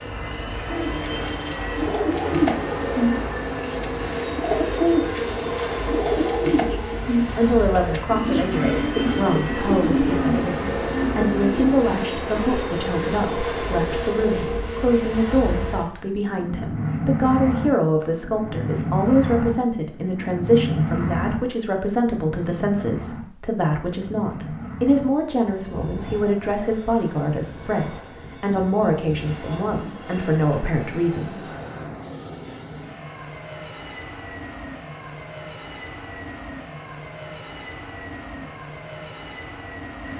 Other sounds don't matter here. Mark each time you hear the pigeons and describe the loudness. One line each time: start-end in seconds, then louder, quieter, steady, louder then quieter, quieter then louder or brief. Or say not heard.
0.7-11.8 steady.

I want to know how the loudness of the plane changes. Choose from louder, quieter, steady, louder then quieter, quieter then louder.
quieter.